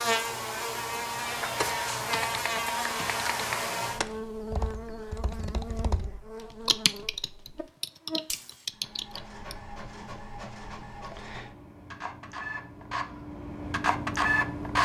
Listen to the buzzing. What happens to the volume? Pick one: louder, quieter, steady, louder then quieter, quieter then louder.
quieter.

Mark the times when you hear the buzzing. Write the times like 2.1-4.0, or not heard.
0.0-8.7.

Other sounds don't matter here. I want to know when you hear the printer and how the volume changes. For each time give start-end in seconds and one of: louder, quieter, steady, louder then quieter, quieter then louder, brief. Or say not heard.
8.7-14.8 louder.